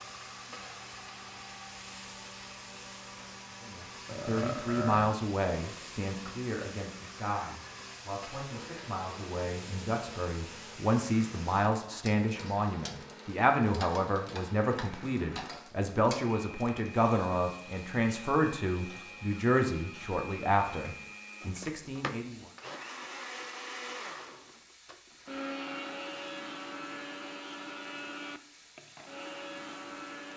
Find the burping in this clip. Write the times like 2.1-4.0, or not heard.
4.0-5.2.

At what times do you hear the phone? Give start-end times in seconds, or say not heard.
not heard.